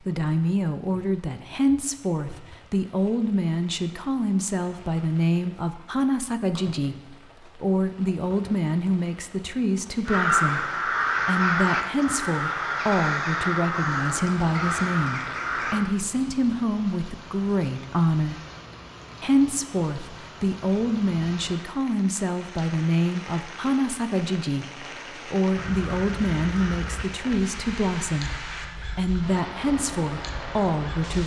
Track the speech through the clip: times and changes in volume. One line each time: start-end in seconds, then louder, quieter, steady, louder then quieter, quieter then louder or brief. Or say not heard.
0.0-18.4 steady
19.2-31.2 steady.